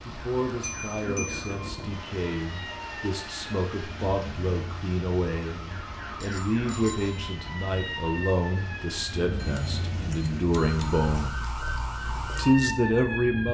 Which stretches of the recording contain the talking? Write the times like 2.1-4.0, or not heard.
0.1-11.3, 12.3-13.4.